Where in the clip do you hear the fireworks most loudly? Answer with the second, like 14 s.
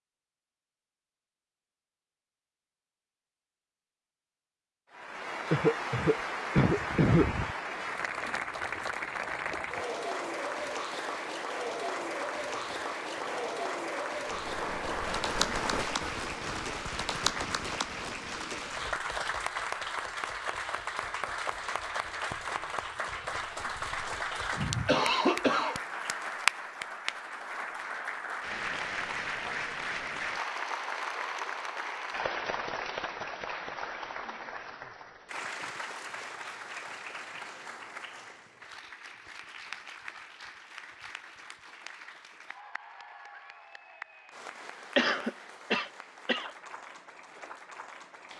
16 s.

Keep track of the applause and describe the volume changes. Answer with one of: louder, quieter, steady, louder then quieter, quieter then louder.
quieter.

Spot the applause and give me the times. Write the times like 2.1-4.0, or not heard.
4.9-48.3.